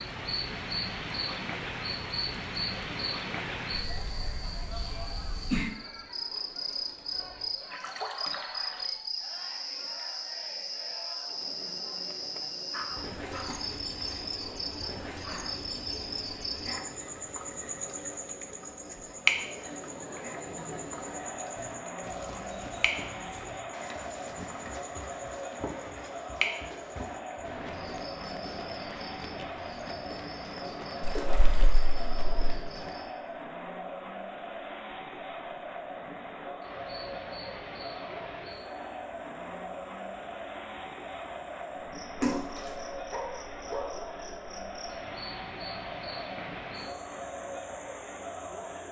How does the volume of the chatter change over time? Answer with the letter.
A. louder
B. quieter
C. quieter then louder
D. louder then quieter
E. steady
A.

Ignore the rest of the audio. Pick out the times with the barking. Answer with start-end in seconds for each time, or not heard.
12.7-13.7, 14.3-15.6, 42.2-44.4.